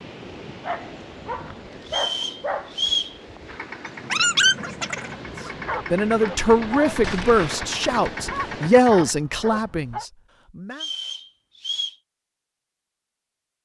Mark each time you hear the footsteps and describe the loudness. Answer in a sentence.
You can't hear the footsteps here.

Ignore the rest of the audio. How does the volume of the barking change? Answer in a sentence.
The volume of the barking goes up, then down.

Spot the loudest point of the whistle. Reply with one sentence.
The loudest moment of the whistle is at 3 seconds.